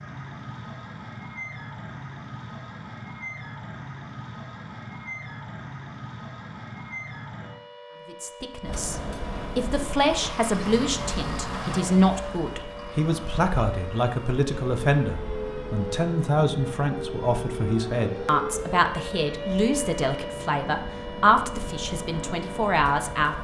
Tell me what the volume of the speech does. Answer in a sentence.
The volume of the speech stays about the same.